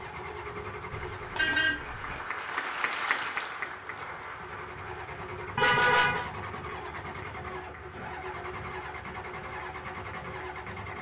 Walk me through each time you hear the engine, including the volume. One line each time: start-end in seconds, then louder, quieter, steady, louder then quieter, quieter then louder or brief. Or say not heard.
0.0-10.9 quieter then louder.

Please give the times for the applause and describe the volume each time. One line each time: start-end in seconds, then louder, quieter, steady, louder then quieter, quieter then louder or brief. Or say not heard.
0.0-10.9 louder then quieter.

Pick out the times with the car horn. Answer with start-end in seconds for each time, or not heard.
0.9-2.2, 5.5-6.2.